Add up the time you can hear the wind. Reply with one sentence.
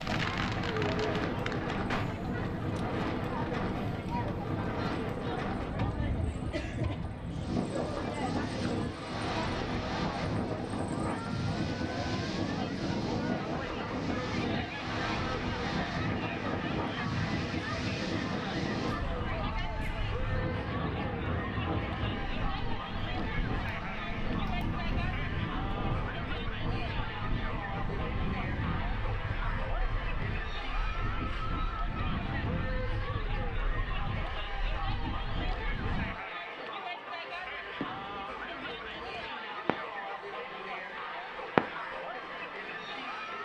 You can hear the wind for 36 seconds altogether.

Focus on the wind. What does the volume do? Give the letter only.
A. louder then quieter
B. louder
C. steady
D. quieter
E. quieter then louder
D.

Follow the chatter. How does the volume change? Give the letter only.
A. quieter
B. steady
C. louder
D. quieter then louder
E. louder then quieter
B.